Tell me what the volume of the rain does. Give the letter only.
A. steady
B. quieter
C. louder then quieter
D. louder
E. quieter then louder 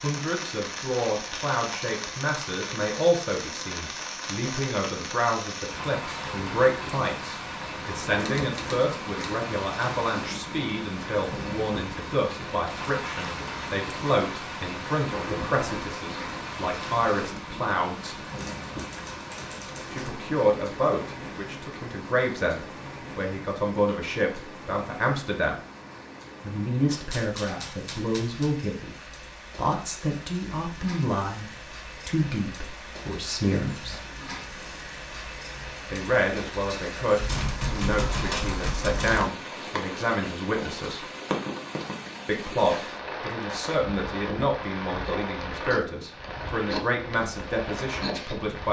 E.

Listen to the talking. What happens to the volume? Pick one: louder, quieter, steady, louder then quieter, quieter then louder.
steady.